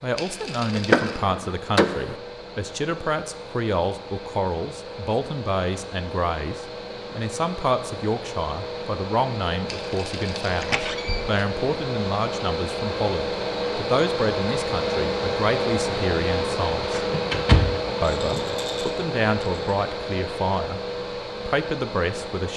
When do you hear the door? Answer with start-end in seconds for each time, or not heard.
0.7-2.1, 10.6-11.4, 16.9-18.6.